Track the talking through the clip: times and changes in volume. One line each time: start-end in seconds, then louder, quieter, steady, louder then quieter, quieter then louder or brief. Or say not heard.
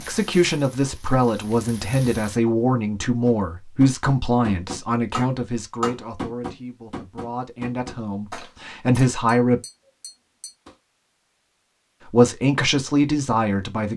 0.0-9.6 quieter then louder
12.1-13.9 brief.